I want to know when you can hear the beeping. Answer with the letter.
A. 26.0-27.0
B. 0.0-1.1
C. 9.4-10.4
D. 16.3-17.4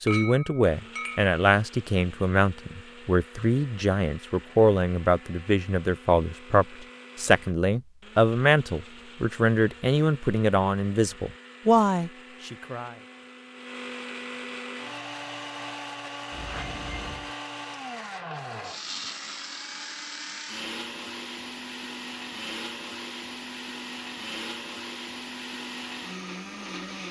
D.